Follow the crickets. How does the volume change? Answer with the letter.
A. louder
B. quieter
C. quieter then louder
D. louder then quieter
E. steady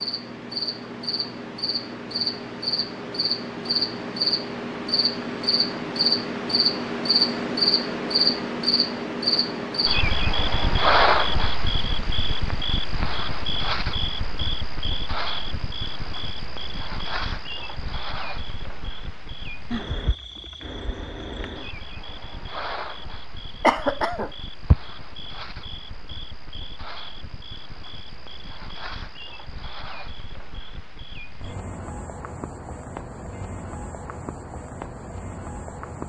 B.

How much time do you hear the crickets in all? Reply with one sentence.
You can hear the crickets for 36 seconds altogether.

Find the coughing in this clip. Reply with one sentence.
You can hear the coughing from 23.6 to 24.8 s.